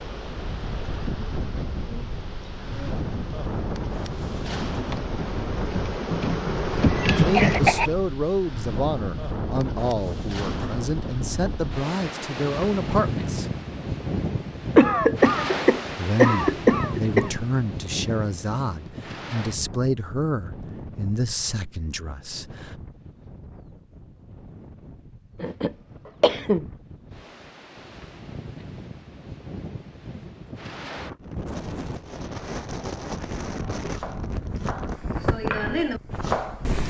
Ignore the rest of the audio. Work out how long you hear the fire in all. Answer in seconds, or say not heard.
not heard.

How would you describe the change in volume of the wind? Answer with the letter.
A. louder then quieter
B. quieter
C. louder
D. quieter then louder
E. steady
D.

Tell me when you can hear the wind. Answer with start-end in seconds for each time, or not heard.
0.0-36.8.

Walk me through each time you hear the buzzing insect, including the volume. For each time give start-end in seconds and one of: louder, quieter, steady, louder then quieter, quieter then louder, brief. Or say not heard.
0.0-8.0 louder.